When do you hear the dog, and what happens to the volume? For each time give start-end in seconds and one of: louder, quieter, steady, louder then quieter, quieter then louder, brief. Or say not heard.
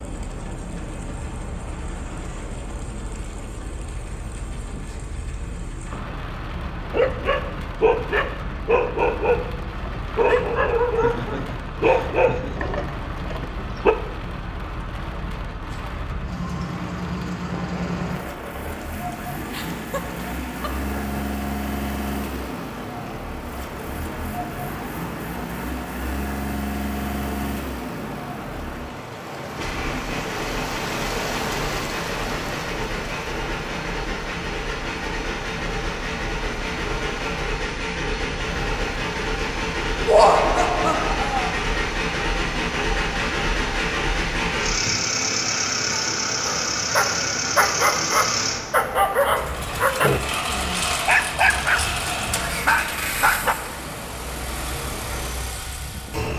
6.8-13.9 quieter
46.5-53.5 steady.